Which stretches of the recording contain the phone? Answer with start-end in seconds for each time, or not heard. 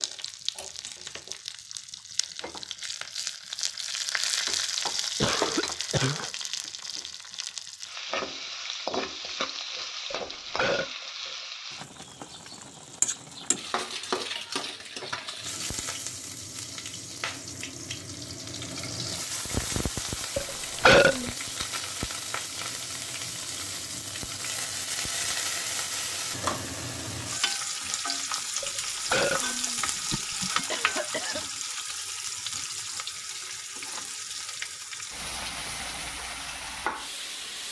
not heard.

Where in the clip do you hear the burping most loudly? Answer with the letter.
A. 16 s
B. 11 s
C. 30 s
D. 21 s
D.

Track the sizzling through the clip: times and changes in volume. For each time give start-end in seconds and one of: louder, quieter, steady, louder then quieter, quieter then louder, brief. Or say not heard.
0.0-37.6 steady.